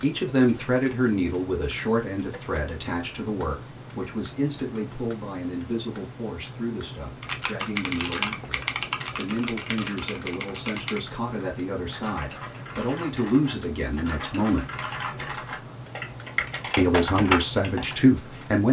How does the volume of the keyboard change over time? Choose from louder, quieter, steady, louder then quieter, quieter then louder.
quieter then louder.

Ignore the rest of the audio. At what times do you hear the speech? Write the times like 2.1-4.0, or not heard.
0.0-14.7, 16.8-18.6.